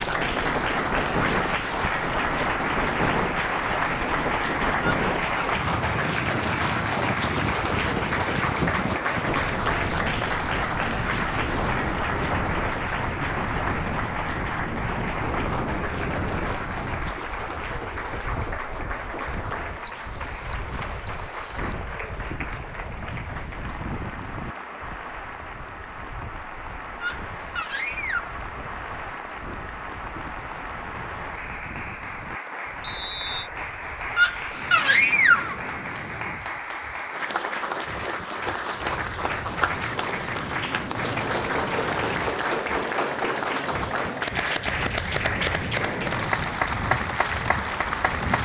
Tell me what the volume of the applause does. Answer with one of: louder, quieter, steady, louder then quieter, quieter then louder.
quieter then louder.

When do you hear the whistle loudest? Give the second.
33 s.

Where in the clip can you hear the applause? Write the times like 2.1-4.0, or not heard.
0.0-48.3.